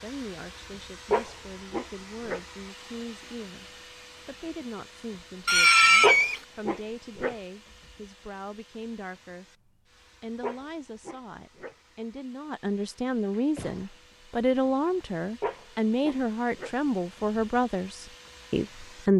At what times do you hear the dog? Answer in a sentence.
The dog can be heard from 1.1 to 2.4 s, from 6.0 to 7.3 s, from 10.4 to 11.8 s and from 15.4 to 16.7 s.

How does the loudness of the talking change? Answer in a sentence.
The loudness of the talking goes up.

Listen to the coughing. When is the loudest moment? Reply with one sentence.
The loudest moment of the coughing is at 6 seconds.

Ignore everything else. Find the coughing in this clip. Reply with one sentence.
You can hear the coughing from 5.5 to 6.4 s and from 13.3 to 13.9 s.